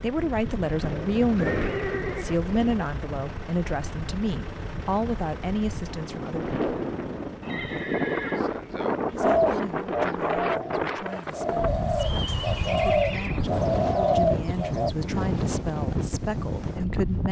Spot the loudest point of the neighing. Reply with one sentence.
The volume of the neighing peaks at 2 seconds.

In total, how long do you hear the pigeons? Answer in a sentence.
The pigeons can be heard for 6 seconds in total.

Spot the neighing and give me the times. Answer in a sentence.
The neighing can be heard from 0.8 to 2.9 s, from 7.4 to 8.4 s and from 12.2 to 13.4 s.